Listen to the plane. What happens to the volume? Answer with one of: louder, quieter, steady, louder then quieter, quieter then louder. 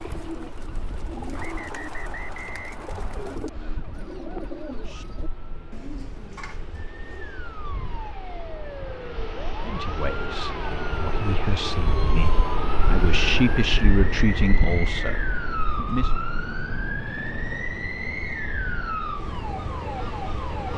louder then quieter.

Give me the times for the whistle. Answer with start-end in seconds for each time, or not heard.
1.4-3.4.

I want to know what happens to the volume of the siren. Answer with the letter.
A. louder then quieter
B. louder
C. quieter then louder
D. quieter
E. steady
B.